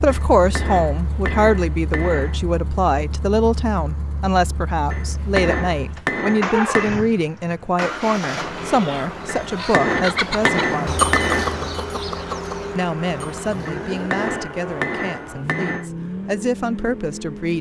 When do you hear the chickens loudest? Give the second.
11 s.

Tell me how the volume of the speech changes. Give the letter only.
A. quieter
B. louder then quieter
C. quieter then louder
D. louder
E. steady
A.